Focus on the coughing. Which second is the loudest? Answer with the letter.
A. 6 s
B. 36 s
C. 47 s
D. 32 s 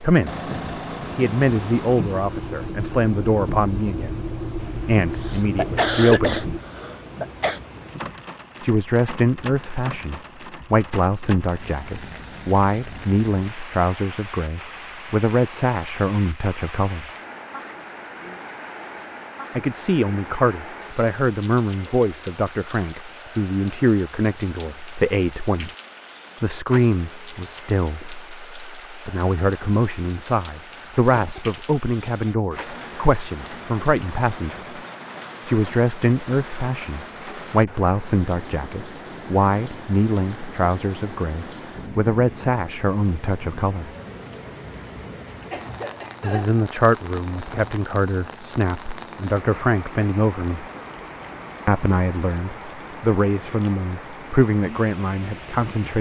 A.